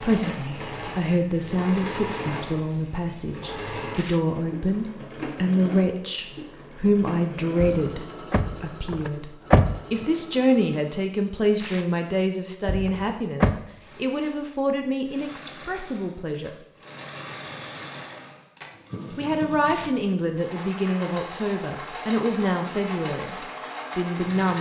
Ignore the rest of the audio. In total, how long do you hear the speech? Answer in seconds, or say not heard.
22 s.